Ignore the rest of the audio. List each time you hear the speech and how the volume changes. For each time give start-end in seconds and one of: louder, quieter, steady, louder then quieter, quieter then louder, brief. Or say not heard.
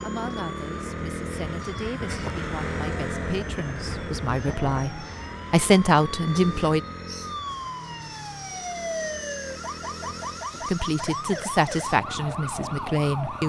0.0-6.8 louder
10.7-13.4 brief.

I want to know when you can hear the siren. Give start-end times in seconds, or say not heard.
0.0-13.4.